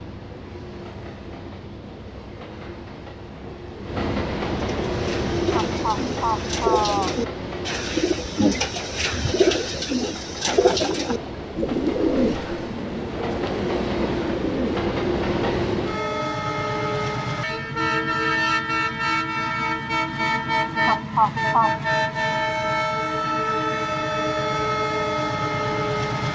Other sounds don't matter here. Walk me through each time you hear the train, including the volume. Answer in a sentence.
You can hear the train from 0.0 to 26.3 s, getting louder.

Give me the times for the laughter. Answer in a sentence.
You can hear the laughter from 5.5 to 7.1 s, from 10.4 to 11.3 s and from 20.9 to 21.7 s.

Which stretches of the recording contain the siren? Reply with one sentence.
You can't hear the siren here.